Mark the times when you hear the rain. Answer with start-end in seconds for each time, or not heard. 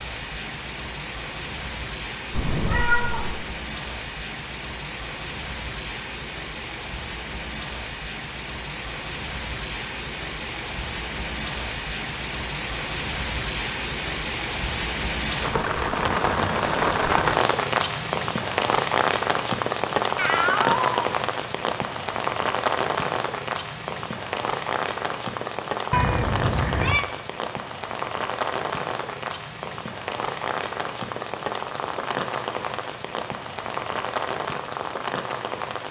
0.0-35.8.